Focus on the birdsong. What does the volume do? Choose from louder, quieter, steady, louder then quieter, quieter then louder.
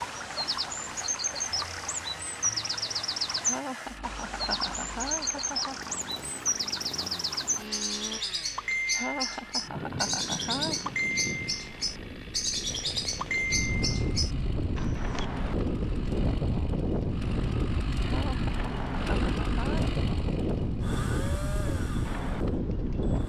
steady.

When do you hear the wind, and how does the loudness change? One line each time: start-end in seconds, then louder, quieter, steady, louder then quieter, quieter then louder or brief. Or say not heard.
9.5-23.2 louder.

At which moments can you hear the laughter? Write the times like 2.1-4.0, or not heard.
3.4-5.9, 8.9-10.9, 18.0-19.9.